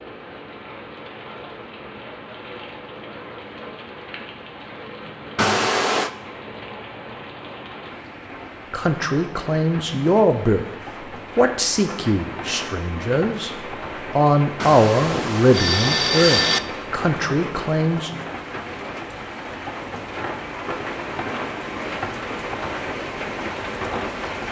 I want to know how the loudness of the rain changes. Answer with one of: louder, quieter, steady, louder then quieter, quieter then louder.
louder.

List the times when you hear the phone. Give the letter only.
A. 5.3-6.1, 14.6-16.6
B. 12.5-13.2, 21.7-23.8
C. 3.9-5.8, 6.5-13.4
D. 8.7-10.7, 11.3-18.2
A.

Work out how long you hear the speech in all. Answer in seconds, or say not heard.
9 s.